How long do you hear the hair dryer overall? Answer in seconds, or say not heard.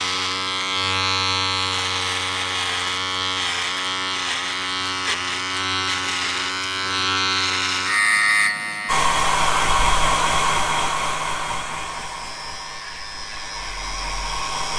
6 s.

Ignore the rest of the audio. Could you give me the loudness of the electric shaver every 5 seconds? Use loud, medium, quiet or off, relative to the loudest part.
loud, loud, quiet.